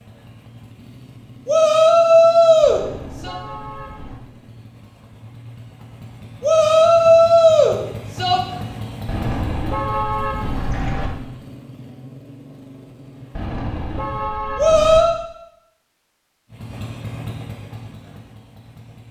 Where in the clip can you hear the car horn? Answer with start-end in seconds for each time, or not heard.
2.6-4.2, 9.1-11.1, 13.3-15.1.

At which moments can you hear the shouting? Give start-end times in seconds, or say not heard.
1.4-3.4, 6.4-8.4, 14.6-15.2.